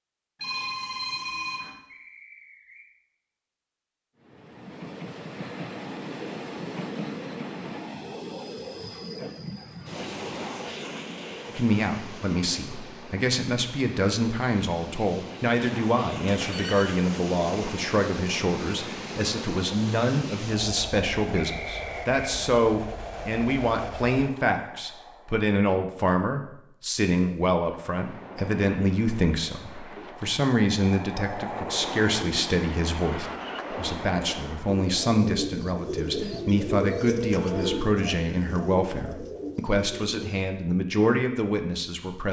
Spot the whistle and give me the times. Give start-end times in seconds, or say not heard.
1.9-2.9, 21.4-22.1.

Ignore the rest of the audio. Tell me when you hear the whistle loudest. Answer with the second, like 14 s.
22 s.